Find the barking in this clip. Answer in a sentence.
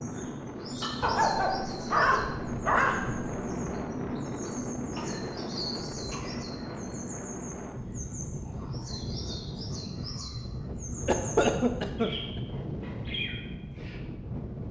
You can hear the barking from 1.0 to 3.4 s.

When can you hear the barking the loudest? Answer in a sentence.
The volume of the barking peaks at 2 seconds.